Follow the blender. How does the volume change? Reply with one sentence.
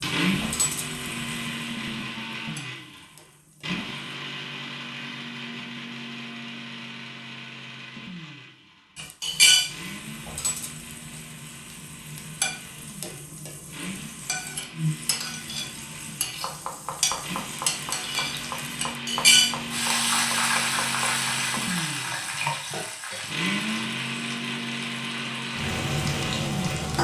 The loudness of the blender goes down, then up.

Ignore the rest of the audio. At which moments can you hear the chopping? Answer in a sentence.
You can hear the chopping from 16.3 to 22.9 s.